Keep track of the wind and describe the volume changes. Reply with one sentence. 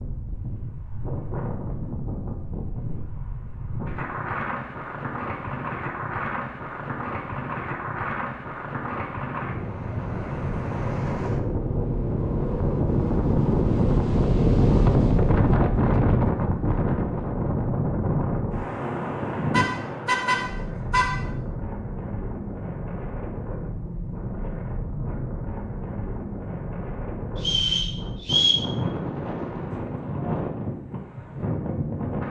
The volume of the wind goes up, then down.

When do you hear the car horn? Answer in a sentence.
You can hear the car horn from 19.5 to 21.2 s.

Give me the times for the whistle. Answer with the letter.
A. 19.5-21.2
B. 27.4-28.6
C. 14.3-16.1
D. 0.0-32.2
B.